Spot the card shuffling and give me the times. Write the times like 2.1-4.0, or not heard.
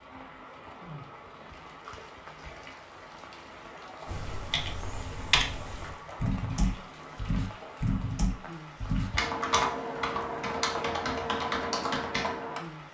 not heard.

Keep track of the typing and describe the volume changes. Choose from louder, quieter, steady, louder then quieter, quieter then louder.
steady.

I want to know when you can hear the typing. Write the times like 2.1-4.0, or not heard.
4.0-12.6.